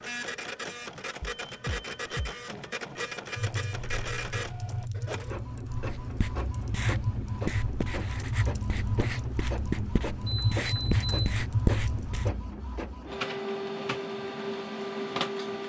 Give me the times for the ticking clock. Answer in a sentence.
You can't hear the ticking clock here.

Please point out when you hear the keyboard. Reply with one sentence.
You can hear the keyboard from 3.4 to 12.3 s.